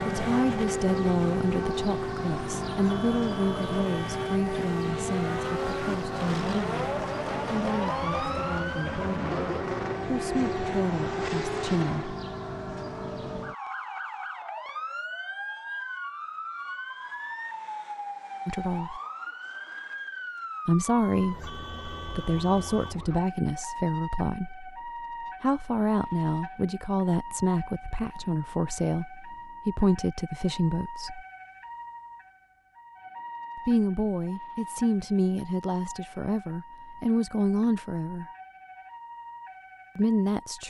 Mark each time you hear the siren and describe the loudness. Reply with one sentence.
The siren can be heard from 0.0 to 40.6 s, getting quieter.